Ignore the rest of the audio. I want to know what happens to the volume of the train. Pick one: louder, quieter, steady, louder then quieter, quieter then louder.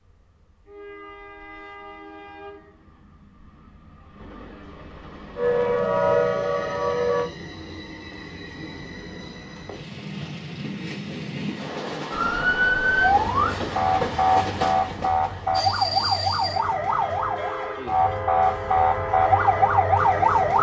louder.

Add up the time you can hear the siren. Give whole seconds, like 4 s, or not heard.
10 s.